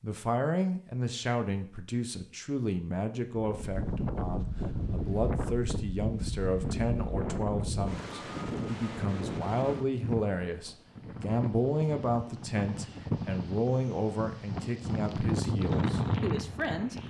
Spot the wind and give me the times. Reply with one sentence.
You can hear the wind from 3.4 to 17.0 s.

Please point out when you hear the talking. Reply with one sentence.
You can hear the talking from 0.0 to 17.0 s.